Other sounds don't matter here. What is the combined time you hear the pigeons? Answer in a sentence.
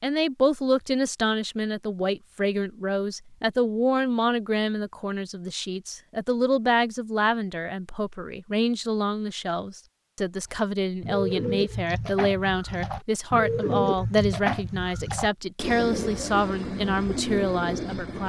The pigeons can be heard for 8 seconds in total.